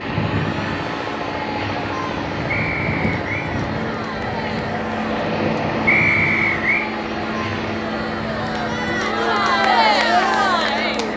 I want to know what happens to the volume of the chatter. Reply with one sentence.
The volume of the chatter goes up.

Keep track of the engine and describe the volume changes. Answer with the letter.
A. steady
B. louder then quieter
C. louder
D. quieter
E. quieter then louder
A.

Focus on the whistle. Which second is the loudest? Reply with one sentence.
The volume of the whistle peaks at 6 seconds.